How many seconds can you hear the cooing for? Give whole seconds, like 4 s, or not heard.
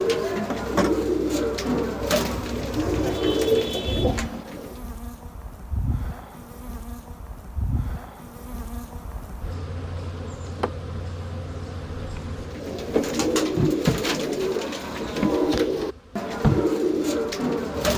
10 s.